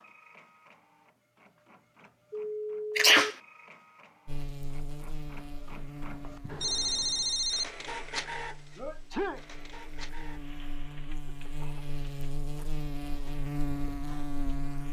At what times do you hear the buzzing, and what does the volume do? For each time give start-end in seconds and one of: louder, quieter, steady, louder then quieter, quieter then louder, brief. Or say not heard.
4.2-14.8 quieter then louder.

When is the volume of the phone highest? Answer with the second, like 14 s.
7 s.